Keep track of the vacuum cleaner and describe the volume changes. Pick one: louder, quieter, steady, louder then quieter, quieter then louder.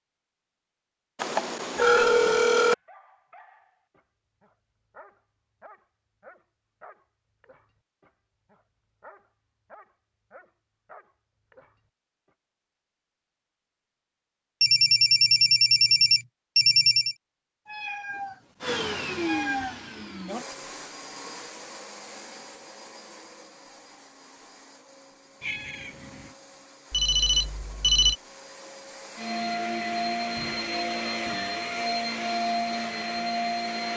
quieter then louder.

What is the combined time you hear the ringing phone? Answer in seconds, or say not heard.
5 s.